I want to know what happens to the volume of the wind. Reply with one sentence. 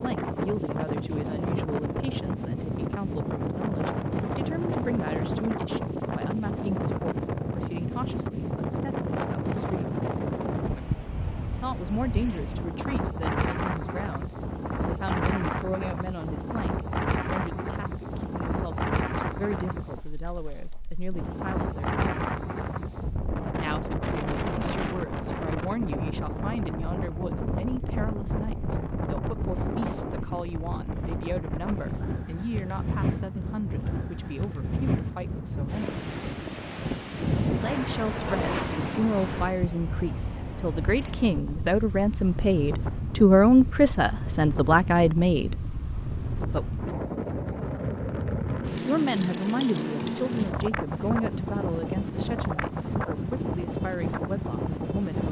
The volume of the wind stays about the same.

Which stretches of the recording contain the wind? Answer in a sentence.
You can hear the wind from 0.0 to 55.2 s.